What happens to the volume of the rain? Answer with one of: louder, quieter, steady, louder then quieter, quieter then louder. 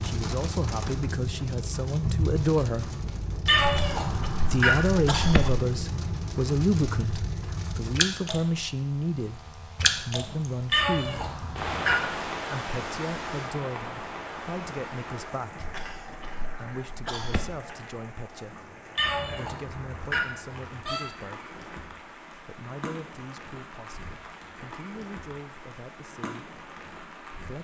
quieter.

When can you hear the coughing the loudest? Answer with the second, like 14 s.
5 s.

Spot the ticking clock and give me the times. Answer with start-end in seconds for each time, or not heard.
not heard.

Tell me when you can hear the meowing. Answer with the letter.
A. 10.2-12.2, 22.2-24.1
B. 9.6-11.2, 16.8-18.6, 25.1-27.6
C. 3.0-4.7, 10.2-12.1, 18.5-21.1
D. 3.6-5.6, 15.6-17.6
C.